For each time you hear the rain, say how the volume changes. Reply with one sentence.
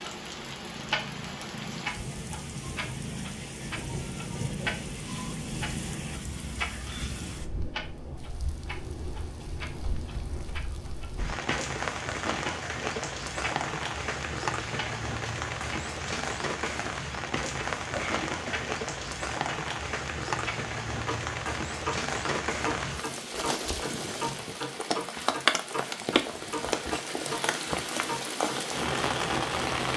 You can hear the rain from 0.0 to 29.9 s, getting louder.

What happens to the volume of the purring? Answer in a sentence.
The loudness of the purring stays about the same.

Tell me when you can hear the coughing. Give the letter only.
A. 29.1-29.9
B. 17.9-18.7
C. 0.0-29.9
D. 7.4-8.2
B.